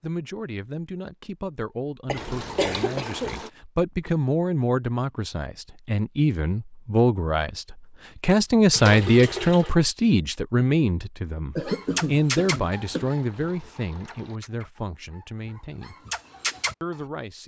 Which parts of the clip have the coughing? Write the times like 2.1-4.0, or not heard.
2.0-3.4, 11.6-13.2.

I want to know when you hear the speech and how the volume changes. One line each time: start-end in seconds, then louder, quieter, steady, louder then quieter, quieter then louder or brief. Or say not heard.
0.0-15.9 louder then quieter
16.8-17.4 brief.